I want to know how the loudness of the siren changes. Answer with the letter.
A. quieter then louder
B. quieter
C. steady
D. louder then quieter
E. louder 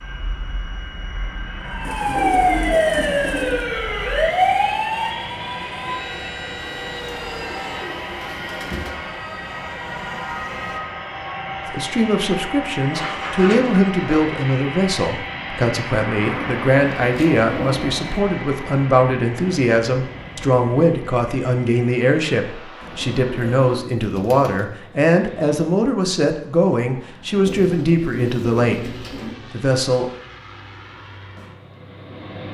B.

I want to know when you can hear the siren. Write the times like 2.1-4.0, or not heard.
1.6-10.9.